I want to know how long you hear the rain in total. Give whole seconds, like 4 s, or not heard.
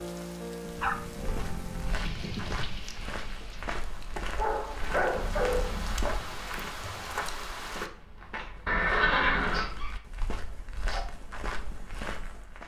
8 s.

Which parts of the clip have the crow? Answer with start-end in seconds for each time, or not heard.
not heard.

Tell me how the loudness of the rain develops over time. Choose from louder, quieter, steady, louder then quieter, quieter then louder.
quieter then louder.